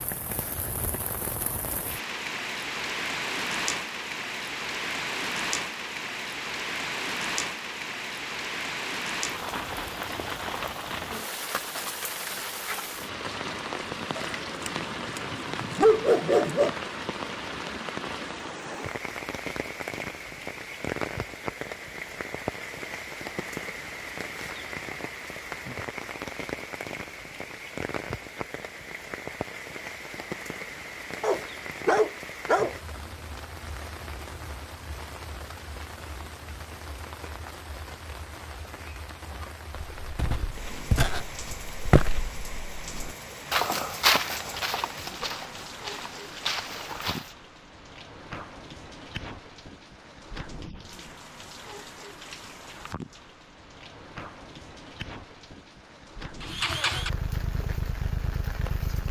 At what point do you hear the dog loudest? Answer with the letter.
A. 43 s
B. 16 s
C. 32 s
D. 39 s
B.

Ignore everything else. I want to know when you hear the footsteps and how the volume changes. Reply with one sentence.
You can hear the footsteps from 40.0 to 47.3 s, getting louder then quieter.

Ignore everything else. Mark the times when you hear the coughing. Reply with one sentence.
You can't hear the coughing here.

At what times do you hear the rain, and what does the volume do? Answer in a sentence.
The rain can be heard from 0.0 to 59.0 s, getting quieter.